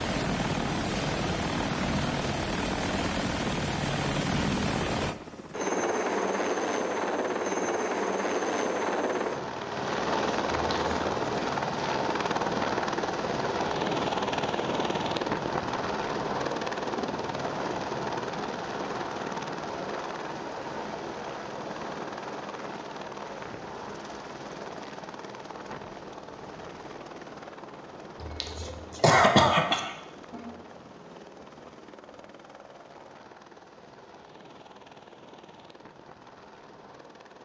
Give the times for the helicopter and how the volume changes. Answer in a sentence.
The helicopter can be heard from 0.0 to 37.4 s, getting quieter.